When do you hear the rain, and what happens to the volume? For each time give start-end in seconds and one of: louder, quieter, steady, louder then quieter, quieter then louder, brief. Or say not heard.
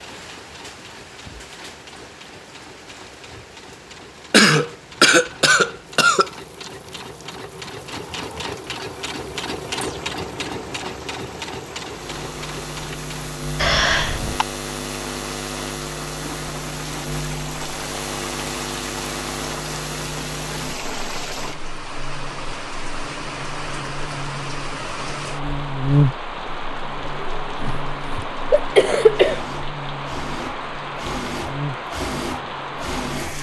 0.0-33.3 louder.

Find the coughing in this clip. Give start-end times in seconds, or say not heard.
4.3-6.3, 13.6-14.4, 27.6-29.4.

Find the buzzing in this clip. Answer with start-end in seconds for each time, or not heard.
11.8-33.3.